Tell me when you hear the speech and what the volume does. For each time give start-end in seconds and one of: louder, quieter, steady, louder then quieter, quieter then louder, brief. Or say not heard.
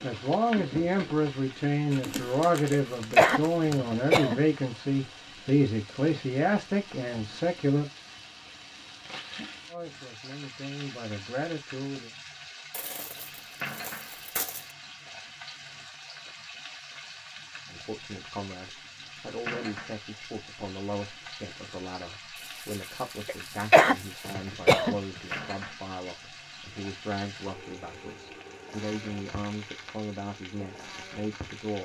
0.0-7.8 steady
9.7-12.1 brief
17.7-31.8 steady.